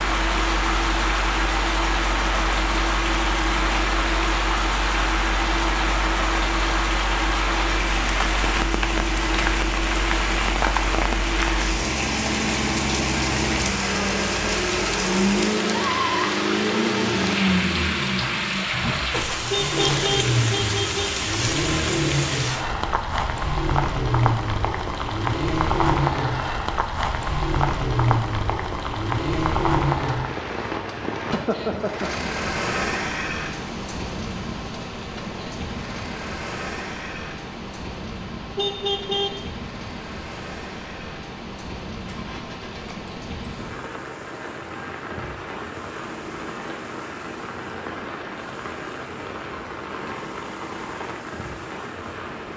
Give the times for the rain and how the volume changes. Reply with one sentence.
You can hear the rain from 0.0 to 52.5 s, getting quieter.